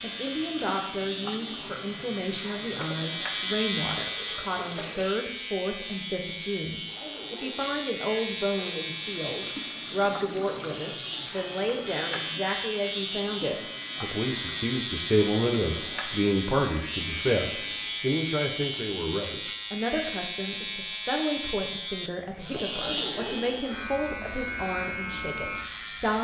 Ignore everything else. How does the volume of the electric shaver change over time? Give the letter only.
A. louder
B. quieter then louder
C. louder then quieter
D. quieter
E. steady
E.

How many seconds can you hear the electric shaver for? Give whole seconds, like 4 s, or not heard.
26 s.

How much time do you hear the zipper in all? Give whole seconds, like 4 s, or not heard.
2 s.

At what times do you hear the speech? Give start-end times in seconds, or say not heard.
0.0-26.1.